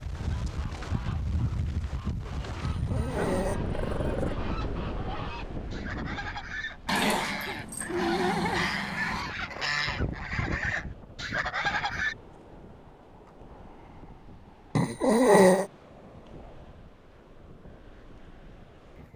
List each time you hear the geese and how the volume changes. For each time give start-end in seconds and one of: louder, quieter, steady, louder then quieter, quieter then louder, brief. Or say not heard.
0.2-12.2 louder.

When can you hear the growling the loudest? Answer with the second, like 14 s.
15 s.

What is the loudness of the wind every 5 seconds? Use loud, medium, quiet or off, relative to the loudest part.
loud, medium, quiet, quiet.